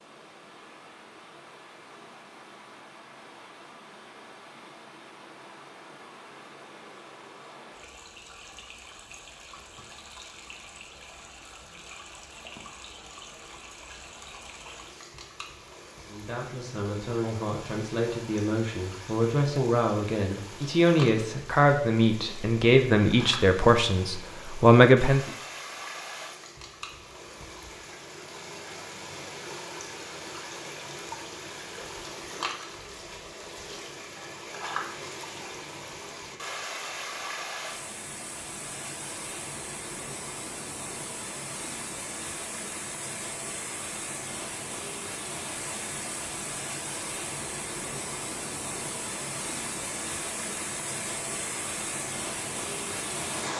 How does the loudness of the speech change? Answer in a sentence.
The loudness of the speech goes up.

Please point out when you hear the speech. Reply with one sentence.
You can hear the speech from 16.0 to 25.2 s.